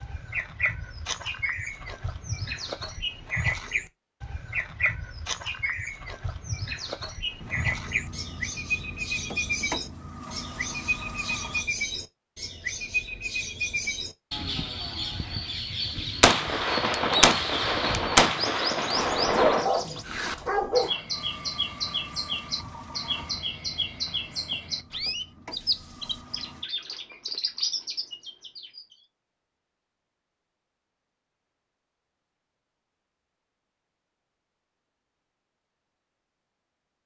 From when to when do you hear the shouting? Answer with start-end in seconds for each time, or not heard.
not heard.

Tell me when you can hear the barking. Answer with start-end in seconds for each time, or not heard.
18.9-20.9.